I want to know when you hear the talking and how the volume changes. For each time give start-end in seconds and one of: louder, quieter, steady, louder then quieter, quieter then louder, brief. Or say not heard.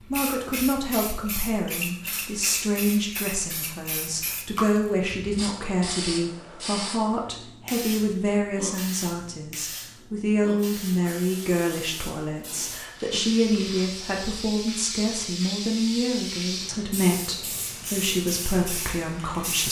0.0-19.6 steady.